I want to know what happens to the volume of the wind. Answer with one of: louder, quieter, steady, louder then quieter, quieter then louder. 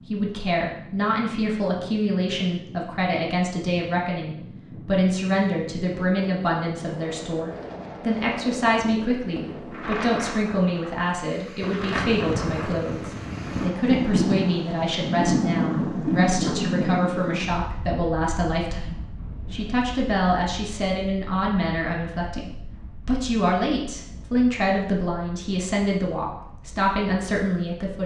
louder then quieter.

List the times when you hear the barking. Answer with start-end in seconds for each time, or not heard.
not heard.